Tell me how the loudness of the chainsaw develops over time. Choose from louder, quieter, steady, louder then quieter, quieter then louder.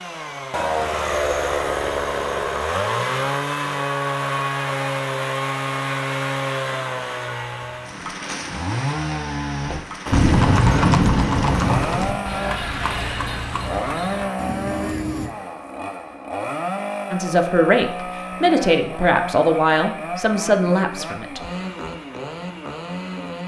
quieter.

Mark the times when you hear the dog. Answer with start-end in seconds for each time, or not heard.
not heard.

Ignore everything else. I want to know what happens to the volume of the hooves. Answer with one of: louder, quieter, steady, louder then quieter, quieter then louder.
quieter.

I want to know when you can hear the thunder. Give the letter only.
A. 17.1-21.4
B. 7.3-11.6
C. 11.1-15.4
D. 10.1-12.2
D.